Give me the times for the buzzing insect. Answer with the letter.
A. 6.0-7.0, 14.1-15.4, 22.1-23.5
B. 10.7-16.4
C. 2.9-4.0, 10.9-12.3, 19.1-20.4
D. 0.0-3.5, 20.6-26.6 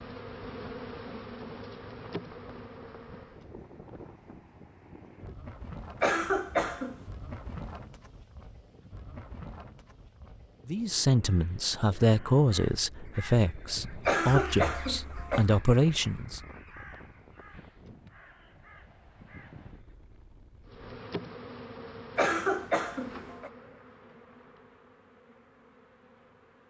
D.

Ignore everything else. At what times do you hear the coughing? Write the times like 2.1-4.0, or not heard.
6.0-7.0, 14.1-15.4, 22.1-23.5.